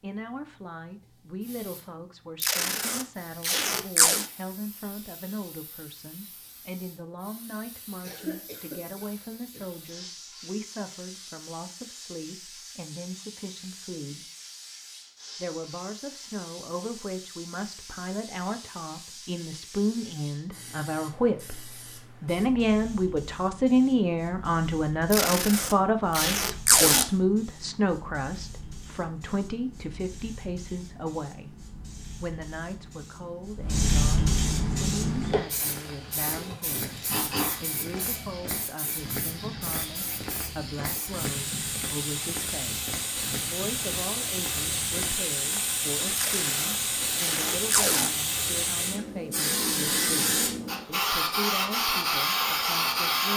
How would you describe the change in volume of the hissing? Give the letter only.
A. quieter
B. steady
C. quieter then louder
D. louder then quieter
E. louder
E.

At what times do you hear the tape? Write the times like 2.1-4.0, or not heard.
2.4-4.2, 25.1-27.1, 46.1-48.1.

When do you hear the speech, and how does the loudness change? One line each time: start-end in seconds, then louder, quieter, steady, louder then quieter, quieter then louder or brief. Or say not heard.
0.0-14.2 steady
15.4-31.6 louder then quieter
32.2-37.0 steady
37.6-53.3 steady.